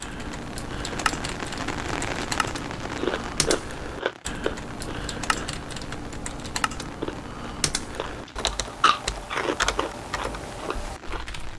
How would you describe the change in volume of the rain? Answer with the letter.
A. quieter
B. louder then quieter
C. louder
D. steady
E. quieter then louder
A.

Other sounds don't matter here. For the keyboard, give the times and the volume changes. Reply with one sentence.
You can hear the keyboard from 0.0 to 11.5 s, at a steady volume.